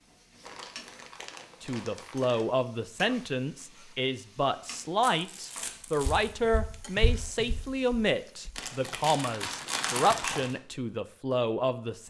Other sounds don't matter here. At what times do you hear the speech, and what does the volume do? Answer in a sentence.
The speech can be heard from 1.6 to 12.0 s, at a steady volume.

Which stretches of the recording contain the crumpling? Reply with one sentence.
The crumpling can be heard from 0.4 to 2.5 s, from 5.0 to 6.3 s and from 8.6 to 10.6 s.